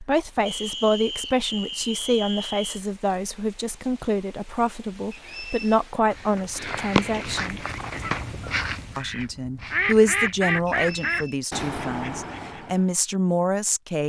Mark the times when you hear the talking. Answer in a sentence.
The talking can be heard from 0.0 to 7.7 s and from 8.9 to 14.0 s.